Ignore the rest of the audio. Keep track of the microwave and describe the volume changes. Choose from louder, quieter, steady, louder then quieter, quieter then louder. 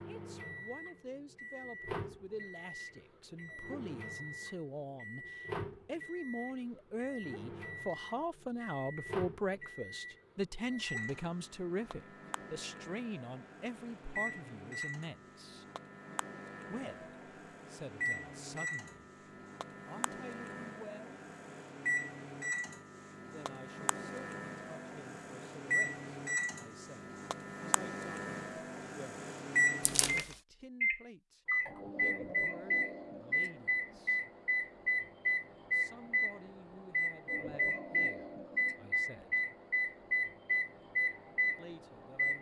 louder.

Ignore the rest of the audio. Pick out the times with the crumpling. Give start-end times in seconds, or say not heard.
29.8-30.4.